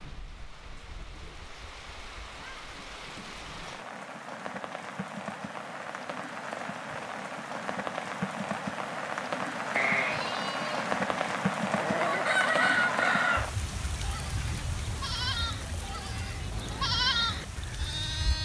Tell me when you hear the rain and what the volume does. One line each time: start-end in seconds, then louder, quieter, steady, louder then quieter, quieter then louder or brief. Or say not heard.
0.0-18.4 louder then quieter.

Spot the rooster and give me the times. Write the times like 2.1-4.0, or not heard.
11.9-13.5.